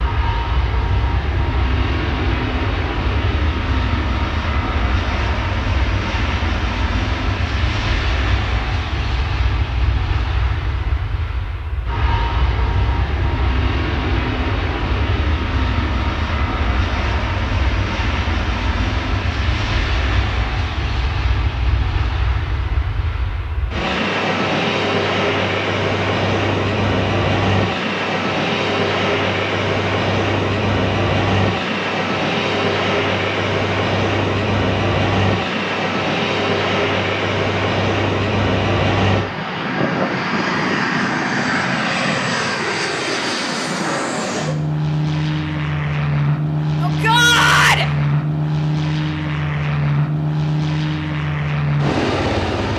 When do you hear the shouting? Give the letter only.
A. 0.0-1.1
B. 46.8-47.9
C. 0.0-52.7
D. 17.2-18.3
B.